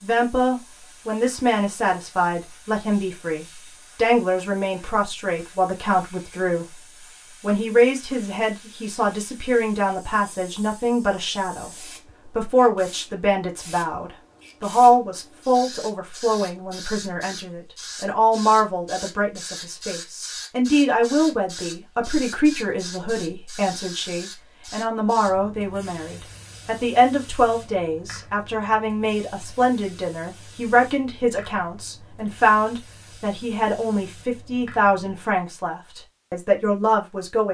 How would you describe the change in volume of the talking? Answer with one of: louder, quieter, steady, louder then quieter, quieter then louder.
steady.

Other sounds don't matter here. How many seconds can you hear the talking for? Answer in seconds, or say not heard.
37 s.